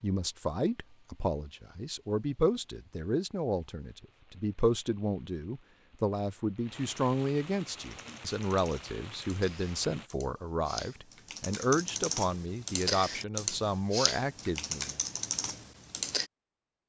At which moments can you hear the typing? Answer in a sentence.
You can hear the typing from 7.8 to 16.3 s.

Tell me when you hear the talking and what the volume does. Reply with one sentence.
You can hear the talking from 0.0 to 14.9 s, at a steady volume.